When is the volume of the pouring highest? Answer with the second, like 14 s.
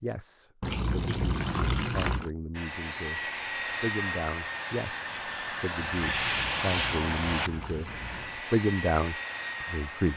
2 s.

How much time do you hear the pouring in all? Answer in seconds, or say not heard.
4 s.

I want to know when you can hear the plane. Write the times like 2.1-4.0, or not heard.
2.5-10.1.